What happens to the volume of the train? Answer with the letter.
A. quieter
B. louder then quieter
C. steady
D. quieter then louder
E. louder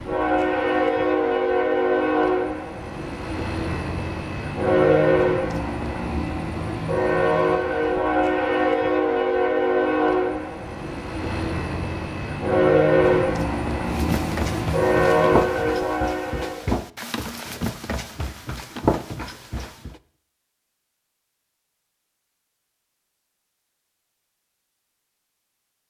C.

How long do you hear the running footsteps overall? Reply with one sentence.
You can hear the running footsteps for 6 seconds altogether.